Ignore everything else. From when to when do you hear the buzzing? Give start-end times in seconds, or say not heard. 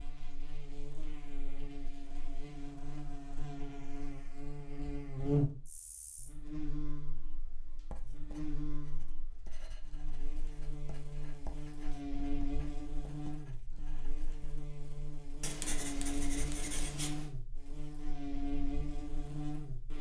0.0-19.9.